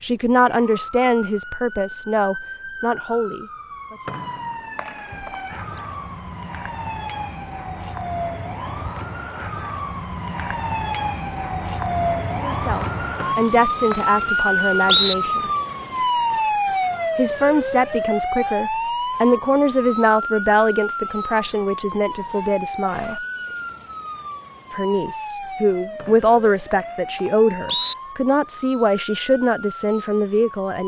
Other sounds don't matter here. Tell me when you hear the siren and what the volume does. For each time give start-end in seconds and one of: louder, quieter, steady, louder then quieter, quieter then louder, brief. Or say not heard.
0.0-30.8 louder then quieter.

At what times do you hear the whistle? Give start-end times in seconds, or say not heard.
4.0-5.4, 13.2-15.2, 25.9-27.9.